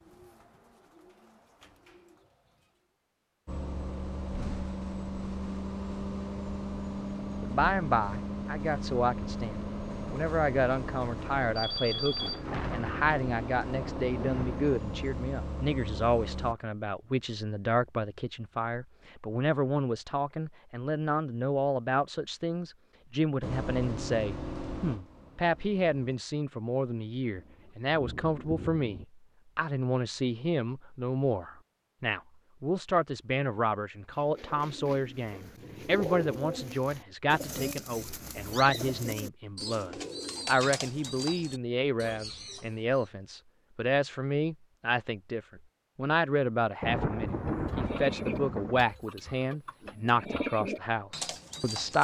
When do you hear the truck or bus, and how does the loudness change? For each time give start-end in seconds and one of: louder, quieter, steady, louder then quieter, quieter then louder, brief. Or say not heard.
3.5-16.6 steady
23.4-25.9 brief.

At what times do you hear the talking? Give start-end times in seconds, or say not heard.
7.4-51.9.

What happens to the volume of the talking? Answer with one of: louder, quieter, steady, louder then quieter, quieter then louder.
steady.